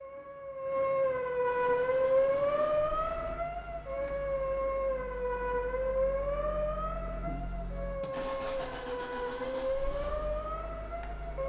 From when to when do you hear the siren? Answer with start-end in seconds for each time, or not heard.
0.0-11.4.